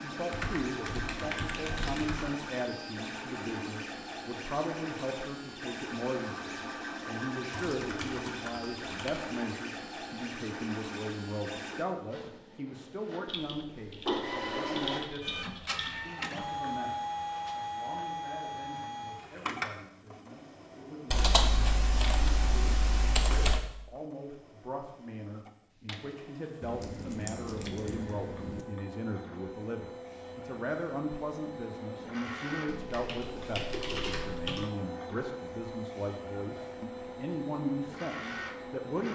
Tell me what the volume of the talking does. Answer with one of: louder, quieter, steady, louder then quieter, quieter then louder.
quieter then louder.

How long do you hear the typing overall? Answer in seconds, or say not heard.
13 s.